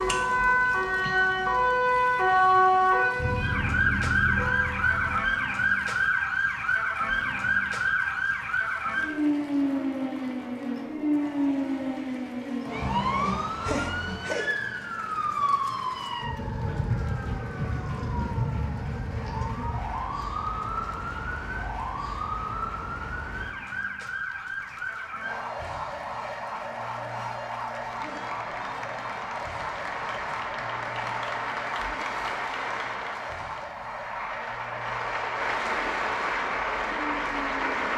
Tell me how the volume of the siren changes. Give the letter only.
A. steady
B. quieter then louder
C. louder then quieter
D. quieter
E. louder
D.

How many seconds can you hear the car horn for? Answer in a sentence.
You can hear the car horn for 2 seconds altogether.